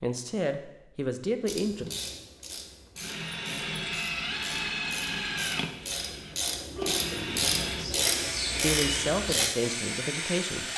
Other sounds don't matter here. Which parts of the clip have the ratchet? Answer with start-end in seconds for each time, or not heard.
1.4-9.5.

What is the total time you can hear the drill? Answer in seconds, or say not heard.
8 s.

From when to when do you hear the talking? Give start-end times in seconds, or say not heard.
0.0-1.9, 8.6-10.7.